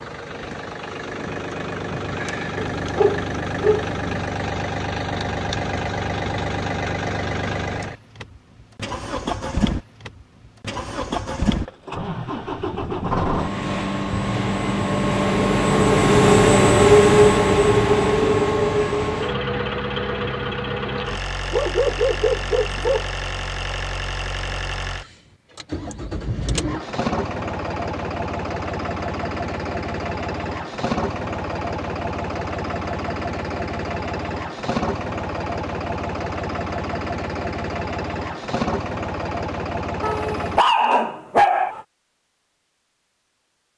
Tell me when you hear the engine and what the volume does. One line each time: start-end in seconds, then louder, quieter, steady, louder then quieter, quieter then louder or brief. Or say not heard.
0.0-40.6 louder then quieter.